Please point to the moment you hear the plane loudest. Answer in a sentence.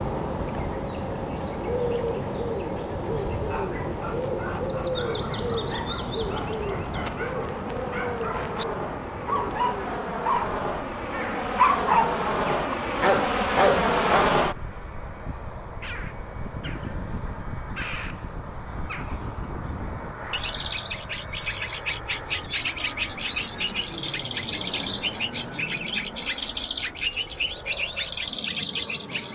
The loudest moment of the plane is at 14 seconds.